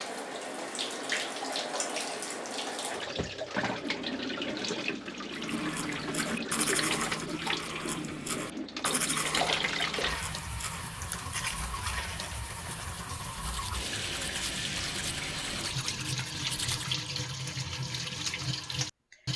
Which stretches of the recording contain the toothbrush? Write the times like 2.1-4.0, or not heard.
5.3-16.9.